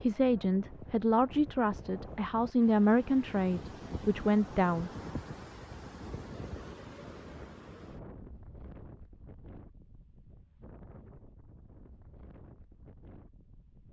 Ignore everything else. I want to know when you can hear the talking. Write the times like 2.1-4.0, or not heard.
0.0-4.9.